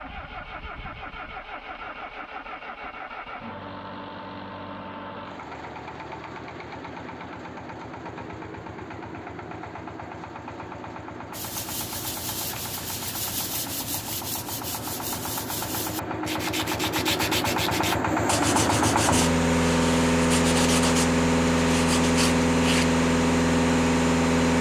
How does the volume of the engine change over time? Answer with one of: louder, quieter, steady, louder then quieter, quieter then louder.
louder.